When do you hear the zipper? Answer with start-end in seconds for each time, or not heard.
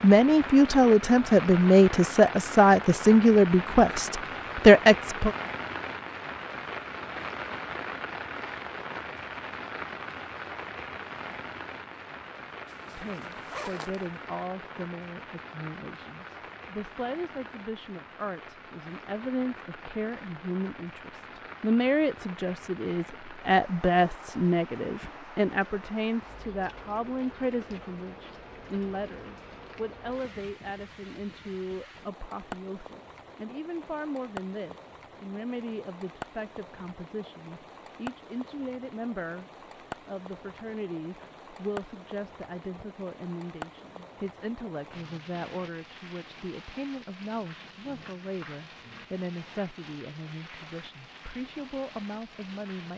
12.7-14.1.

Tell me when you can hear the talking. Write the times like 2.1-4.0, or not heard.
0.0-5.3, 12.8-52.9.